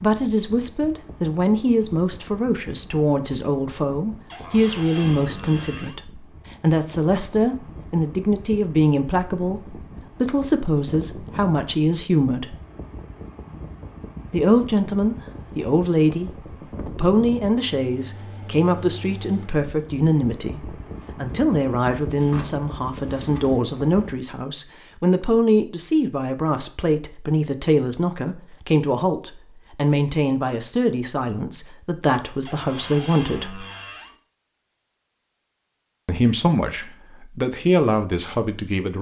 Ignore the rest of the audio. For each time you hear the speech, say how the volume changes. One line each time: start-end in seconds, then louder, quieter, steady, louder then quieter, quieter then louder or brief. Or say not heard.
0.0-12.6 steady
14.3-33.6 steady
36.0-38.9 brief.